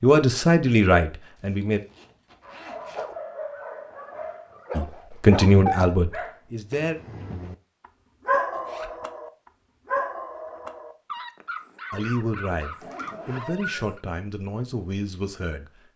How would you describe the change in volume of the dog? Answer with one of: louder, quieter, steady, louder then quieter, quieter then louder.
louder then quieter.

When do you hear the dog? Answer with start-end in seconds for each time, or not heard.
2.4-7.5, 8.2-14.0.